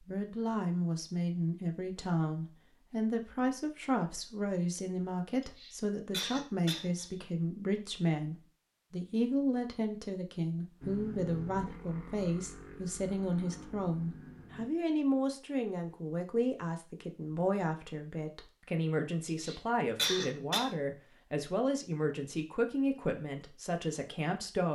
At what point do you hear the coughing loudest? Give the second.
20 s.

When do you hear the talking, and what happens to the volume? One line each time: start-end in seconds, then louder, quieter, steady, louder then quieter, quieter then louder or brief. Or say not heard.
0.0-24.6 steady.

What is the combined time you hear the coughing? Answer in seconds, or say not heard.
3 s.